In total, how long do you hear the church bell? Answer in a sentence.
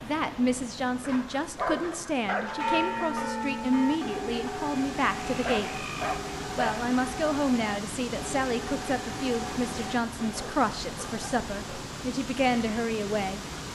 You can hear the church bell for 8 seconds altogether.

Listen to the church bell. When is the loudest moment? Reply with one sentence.
The loudest moment of the church bell is at 3 seconds.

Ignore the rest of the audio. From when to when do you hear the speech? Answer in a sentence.
You can hear the speech from 0.0 to 5.8 s and from 6.5 to 13.4 s.